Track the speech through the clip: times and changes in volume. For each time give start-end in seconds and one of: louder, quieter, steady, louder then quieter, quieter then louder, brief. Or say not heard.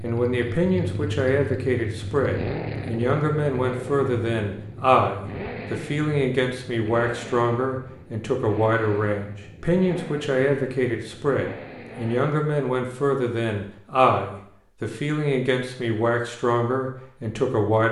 0.0-17.8 steady.